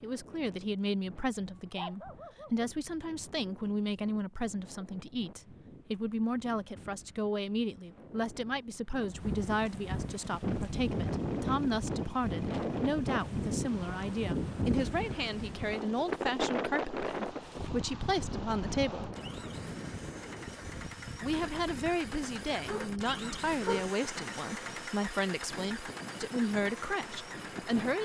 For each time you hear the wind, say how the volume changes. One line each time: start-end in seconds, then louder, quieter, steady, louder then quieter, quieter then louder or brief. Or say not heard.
0.0-27.9 louder then quieter.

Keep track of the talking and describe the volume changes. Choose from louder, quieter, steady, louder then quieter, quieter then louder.
steady.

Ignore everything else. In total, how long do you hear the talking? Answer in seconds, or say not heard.
26 s.